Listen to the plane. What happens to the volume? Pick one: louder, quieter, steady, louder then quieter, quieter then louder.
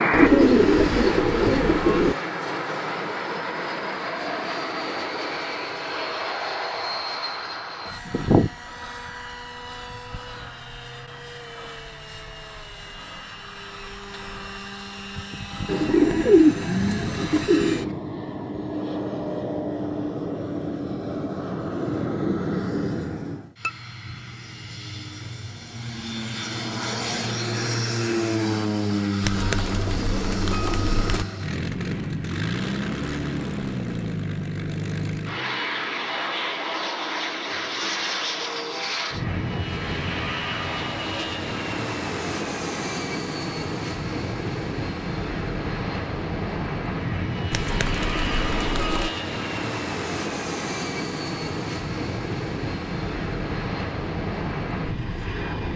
steady.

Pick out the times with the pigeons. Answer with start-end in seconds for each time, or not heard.
0.1-2.1, 15.7-17.9, 29.2-31.2, 47.5-49.1.